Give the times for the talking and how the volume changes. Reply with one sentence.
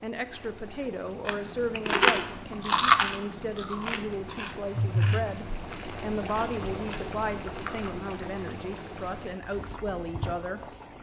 You can hear the talking from 0.0 to 10.7 s, at a steady volume.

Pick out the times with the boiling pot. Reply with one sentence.
The boiling pot can be heard from 0.0 to 10.9 s.